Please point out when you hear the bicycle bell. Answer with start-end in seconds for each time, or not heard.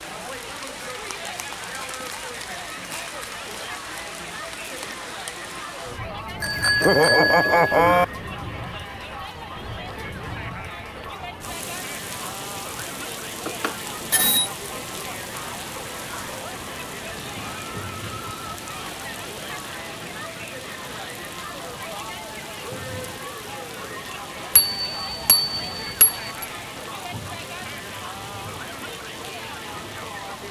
6.4-8.1, 13.4-14.5, 24.6-26.4.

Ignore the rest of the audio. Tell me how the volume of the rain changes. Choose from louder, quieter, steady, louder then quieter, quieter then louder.
steady.